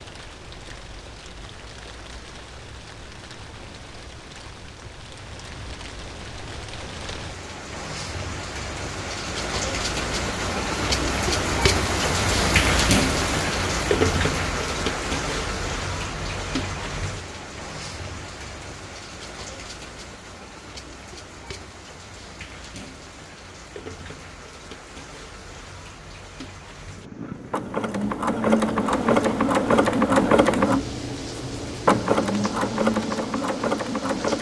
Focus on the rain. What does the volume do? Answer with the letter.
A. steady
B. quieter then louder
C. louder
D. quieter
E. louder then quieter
E.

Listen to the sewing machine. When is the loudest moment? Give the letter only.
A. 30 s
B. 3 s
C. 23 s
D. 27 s
A.